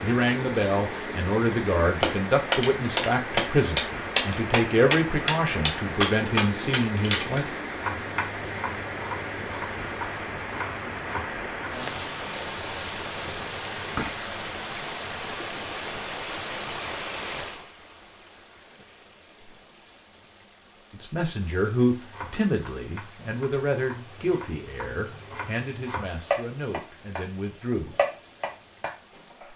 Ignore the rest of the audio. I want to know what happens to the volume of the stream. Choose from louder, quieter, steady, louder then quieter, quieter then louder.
quieter.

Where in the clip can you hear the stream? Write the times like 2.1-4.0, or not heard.
0.0-29.5.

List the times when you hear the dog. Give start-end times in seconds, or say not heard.
not heard.